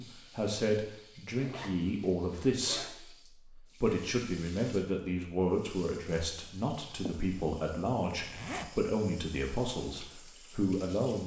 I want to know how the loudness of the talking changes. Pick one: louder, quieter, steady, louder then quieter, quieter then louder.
steady.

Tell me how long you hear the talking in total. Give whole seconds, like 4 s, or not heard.
11 s.